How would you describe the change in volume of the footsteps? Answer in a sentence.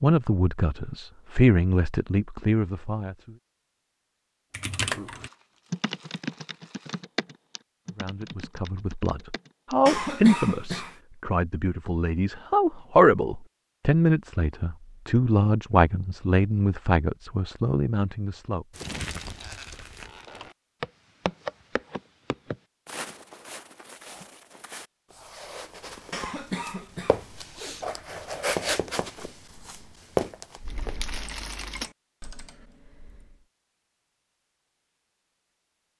The loudness of the footsteps goes down, then up.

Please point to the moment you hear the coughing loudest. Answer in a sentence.
The volume of the coughing peaks at 10 seconds.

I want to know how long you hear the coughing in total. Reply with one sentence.
The coughing can be heard for 3 seconds in total.